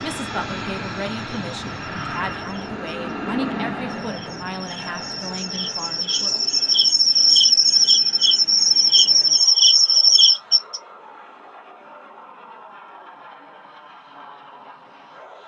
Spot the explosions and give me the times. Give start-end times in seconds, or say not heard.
not heard.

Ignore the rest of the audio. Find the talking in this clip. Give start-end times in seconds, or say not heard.
0.0-6.5.